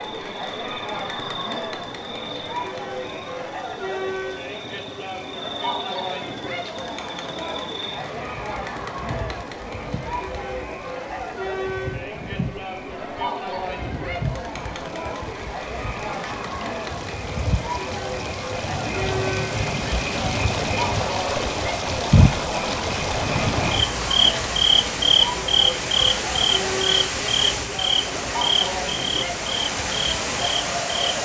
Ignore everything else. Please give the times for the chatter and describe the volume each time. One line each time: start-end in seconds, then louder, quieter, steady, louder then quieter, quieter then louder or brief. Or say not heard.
0.0-31.2 steady.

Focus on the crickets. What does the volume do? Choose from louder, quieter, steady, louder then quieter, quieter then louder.
louder.